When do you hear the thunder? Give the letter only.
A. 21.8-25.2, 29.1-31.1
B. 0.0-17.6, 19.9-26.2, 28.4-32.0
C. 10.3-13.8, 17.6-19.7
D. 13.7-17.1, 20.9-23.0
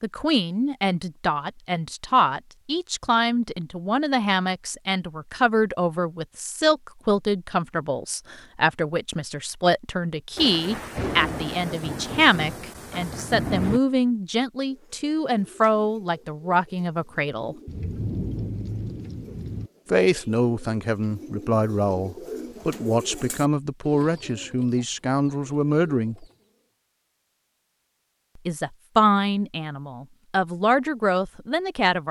C.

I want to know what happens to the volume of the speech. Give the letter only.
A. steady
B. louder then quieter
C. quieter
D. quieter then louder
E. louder
A.